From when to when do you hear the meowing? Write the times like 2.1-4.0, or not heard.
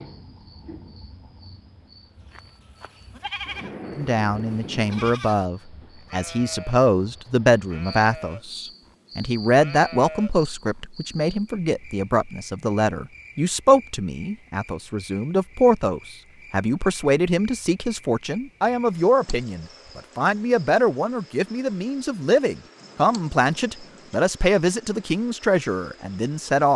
not heard.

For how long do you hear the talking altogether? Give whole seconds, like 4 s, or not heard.
23 s.